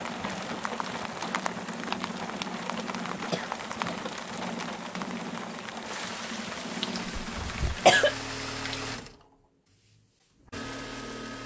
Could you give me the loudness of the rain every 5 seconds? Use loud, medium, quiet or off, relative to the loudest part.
loud, loud, off.